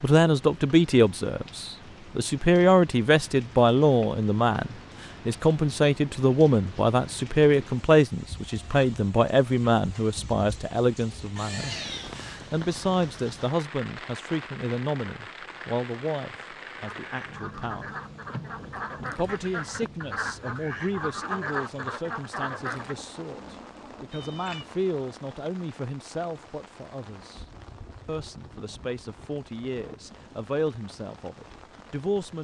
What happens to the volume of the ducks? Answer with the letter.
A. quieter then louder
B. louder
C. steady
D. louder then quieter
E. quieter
B.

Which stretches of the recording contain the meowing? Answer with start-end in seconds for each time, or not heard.
11.3-12.2, 24.1-25.1.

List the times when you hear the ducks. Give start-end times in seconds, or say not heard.
16.8-22.9.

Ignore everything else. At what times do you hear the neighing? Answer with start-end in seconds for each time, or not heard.
not heard.